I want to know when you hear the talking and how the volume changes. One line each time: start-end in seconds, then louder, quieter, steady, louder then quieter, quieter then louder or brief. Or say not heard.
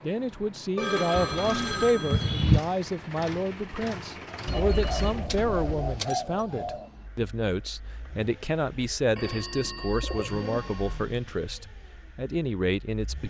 0.0-13.2 steady.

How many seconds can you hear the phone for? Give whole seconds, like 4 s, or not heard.
5 s.